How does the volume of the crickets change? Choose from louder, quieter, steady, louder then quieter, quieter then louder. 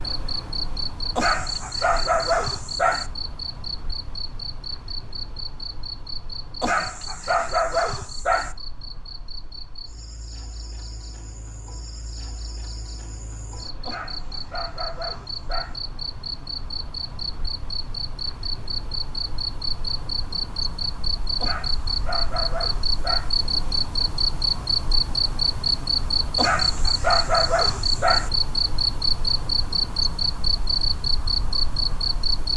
quieter then louder.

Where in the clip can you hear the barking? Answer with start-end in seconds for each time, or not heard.
1.1-3.1, 6.6-8.6, 13.8-15.8, 21.4-23.3, 26.4-28.3.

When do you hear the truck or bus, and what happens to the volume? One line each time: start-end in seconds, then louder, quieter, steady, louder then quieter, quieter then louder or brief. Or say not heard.
not heard.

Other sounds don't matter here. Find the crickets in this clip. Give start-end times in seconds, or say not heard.
0.0-32.5.